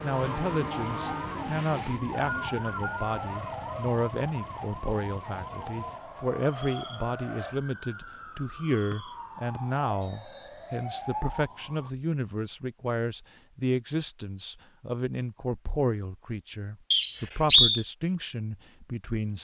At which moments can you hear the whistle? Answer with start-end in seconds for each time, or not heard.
1.8-3.2, 8.9-10.5, 16.9-17.8.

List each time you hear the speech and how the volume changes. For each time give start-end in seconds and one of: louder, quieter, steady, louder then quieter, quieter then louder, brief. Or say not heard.
0.0-19.3 steady.